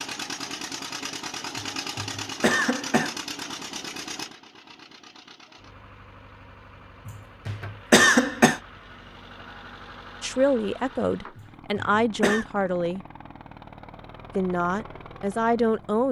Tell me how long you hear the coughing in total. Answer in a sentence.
The coughing can be heard for 4 seconds in total.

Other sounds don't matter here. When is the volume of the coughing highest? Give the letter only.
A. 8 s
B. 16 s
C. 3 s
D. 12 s
A.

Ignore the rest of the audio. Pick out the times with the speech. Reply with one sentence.
The speech can be heard from 10.2 to 13.0 s and from 14.3 to 16.0 s.